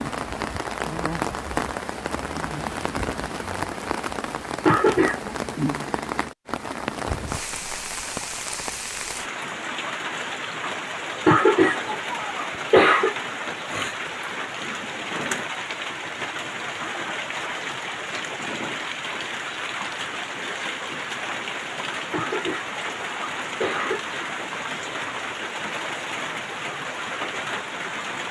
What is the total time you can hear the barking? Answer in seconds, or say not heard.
not heard.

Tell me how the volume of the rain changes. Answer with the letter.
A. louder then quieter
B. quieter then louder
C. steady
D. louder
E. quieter
C.